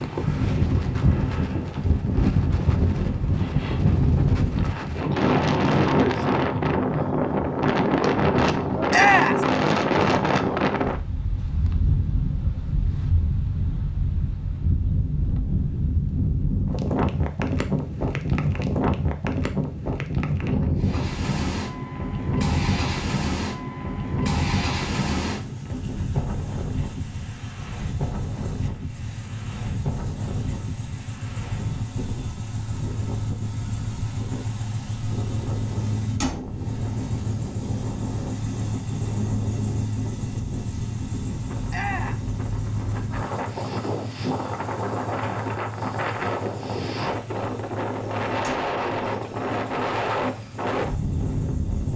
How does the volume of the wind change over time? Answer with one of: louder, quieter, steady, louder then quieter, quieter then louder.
quieter then louder.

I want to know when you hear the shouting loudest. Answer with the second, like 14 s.
9 s.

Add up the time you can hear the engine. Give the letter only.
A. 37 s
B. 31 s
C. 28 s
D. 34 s
B.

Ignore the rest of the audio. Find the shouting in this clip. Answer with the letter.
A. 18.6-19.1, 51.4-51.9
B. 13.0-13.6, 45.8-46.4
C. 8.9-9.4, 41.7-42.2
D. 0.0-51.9
C.